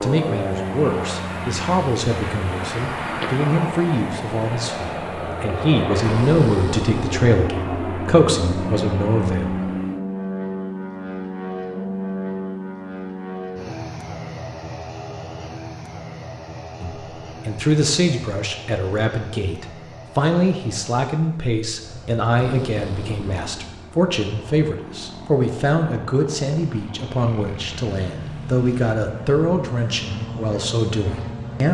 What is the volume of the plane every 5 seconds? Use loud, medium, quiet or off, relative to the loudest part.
loud, loud, loud, medium, quiet, medium, medium.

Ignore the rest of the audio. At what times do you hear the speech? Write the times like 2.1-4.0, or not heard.
0.0-9.7, 16.8-31.7.